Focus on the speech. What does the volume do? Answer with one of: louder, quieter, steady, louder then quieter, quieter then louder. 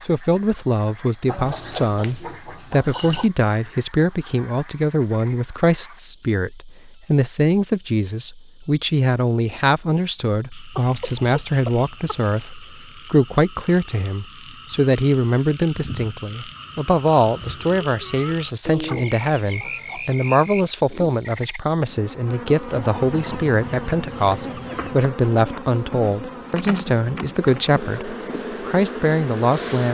steady.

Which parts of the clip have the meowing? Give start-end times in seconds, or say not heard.
not heard.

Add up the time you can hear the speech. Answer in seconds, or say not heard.
30 s.